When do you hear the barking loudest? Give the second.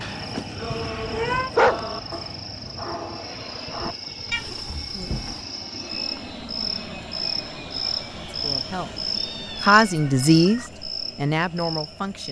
2 s.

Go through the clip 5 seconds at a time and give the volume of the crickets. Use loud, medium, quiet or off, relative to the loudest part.
medium, loud, loud.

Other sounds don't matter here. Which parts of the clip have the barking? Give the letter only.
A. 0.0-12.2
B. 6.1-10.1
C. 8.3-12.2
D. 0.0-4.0
D.